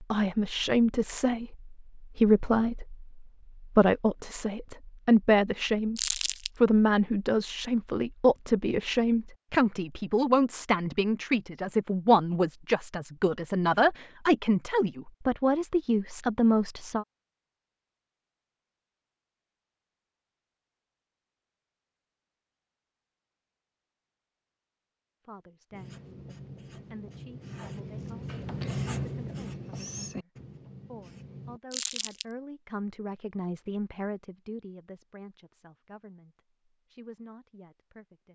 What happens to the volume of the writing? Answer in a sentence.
The volume of the writing goes up, then down.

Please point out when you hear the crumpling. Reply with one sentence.
You can hear the crumpling from 6.0 to 6.5 s and from 31.7 to 32.2 s.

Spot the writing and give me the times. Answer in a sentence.
You can hear the writing from 25.7 to 31.6 s.